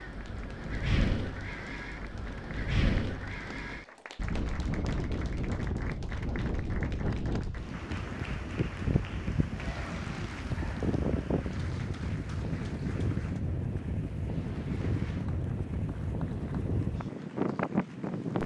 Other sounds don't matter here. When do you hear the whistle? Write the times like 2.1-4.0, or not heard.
not heard.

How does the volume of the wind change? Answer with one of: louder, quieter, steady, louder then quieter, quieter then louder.
steady.